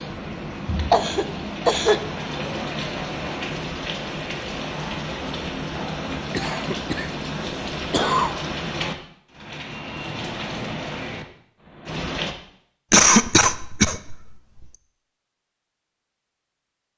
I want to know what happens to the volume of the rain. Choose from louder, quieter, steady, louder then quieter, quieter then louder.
steady.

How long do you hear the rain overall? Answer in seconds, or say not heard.
12 s.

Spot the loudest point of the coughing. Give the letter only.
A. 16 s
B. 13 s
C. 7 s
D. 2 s
B.